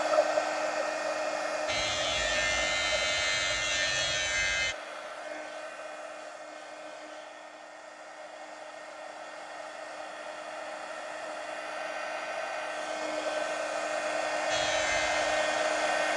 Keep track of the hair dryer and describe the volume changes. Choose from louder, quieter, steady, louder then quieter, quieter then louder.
quieter then louder.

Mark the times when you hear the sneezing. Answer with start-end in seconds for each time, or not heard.
not heard.